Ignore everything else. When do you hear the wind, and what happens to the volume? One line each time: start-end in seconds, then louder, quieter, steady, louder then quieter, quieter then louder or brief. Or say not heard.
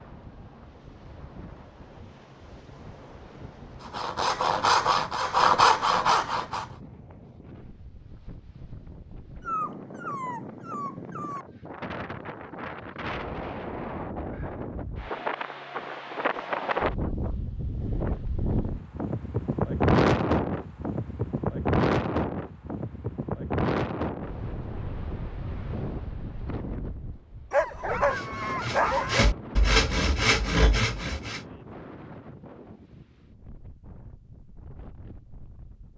0.0-35.9 louder then quieter.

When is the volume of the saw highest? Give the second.
6 s.